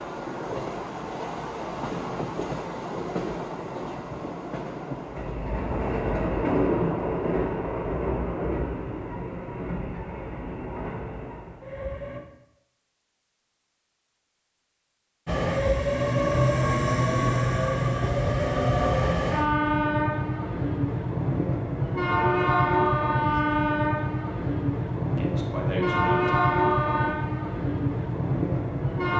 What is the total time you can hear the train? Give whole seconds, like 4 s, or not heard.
26 s.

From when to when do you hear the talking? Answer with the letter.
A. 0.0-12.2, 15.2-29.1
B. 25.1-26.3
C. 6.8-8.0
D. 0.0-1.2
B.